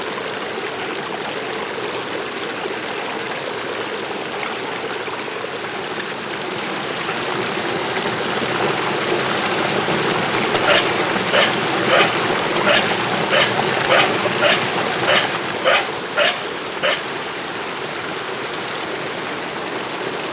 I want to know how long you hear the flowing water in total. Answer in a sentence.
The flowing water can be heard for 20 seconds in total.